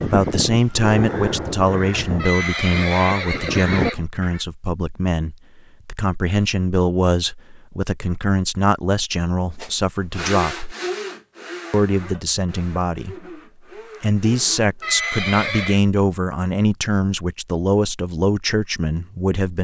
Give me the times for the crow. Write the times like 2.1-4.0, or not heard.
0.0-4.5.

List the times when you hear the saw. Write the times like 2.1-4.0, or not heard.
9.6-14.9.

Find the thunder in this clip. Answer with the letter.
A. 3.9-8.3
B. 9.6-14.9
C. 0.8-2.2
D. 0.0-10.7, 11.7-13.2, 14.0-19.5
C.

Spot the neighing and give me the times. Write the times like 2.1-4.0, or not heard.
2.1-4.0, 14.8-15.8.